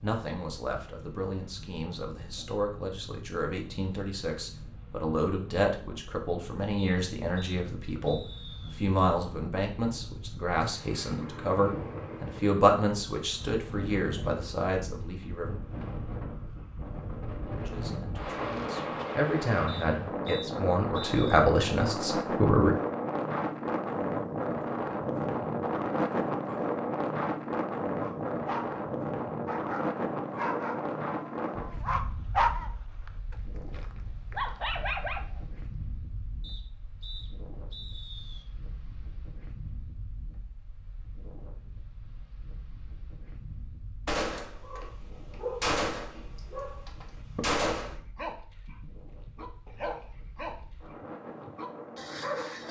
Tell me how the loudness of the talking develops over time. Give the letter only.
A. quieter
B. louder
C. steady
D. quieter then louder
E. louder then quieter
B.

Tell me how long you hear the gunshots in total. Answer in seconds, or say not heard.
4 s.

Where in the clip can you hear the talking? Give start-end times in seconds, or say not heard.
0.0-15.5, 17.6-22.8.